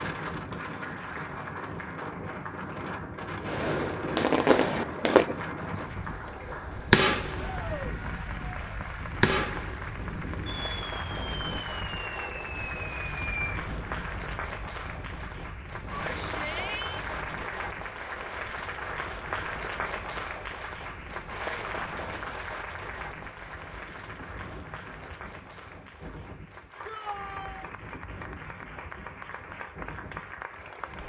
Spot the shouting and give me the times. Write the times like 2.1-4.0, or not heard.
7.5-8.0, 15.9-17.1, 26.9-27.6.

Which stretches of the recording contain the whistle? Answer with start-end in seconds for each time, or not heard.
not heard.